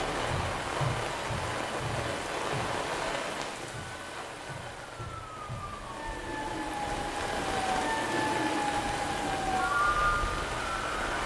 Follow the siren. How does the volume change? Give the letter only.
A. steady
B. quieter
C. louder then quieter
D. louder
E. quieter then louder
E.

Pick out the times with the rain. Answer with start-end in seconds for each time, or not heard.
0.0-11.2.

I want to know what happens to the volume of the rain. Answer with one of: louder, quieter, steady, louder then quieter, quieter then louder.
quieter then louder.